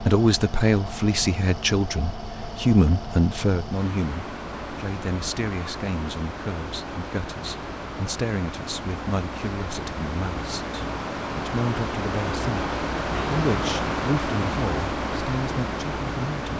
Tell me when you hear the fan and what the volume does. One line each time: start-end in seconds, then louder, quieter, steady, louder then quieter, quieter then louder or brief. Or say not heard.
0.0-16.5 louder.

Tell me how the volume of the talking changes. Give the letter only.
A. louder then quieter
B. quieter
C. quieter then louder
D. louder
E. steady
B.